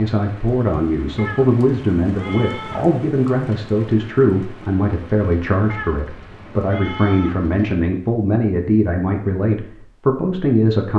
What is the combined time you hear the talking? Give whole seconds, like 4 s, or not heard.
11 s.